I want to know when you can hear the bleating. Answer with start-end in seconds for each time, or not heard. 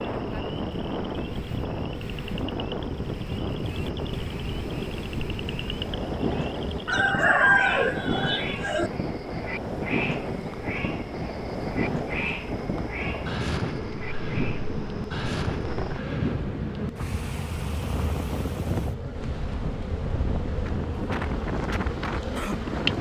not heard.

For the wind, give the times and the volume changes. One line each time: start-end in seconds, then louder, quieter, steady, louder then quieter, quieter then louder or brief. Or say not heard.
0.0-22.9 steady.